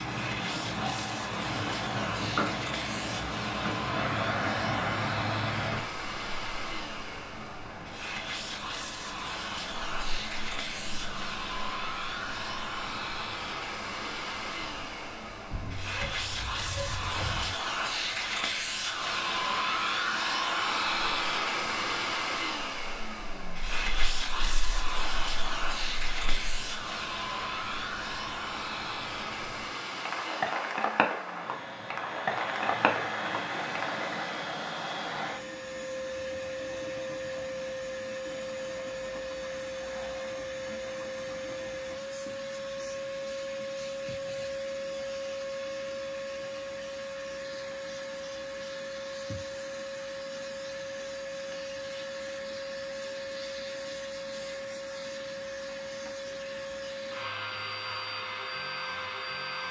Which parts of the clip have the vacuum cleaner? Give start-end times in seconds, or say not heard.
0.0-59.6.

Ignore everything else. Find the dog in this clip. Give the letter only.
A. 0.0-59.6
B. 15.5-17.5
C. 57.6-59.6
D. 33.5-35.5
B.